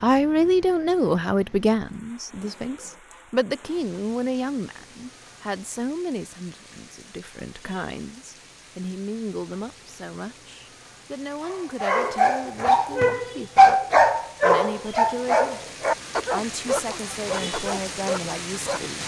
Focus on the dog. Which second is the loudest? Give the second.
14 s.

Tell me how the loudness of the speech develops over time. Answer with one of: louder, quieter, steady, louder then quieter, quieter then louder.
quieter.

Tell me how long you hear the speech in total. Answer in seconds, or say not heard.
19 s.